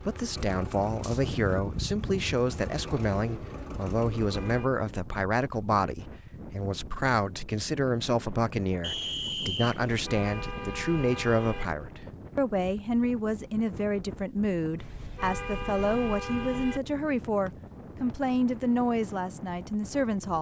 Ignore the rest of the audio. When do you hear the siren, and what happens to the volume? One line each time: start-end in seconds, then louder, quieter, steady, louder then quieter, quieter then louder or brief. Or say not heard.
not heard.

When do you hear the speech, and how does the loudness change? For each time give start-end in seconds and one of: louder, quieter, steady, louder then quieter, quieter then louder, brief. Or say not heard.
0.0-20.3 steady.